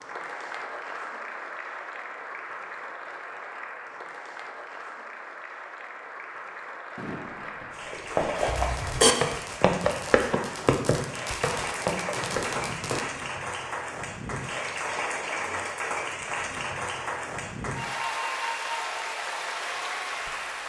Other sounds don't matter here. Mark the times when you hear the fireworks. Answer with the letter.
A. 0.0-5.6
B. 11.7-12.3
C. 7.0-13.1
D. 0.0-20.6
C.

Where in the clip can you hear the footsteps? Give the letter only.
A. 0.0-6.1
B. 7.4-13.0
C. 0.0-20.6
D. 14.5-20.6
B.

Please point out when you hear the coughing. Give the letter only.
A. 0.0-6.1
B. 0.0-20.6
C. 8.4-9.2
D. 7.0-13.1
C.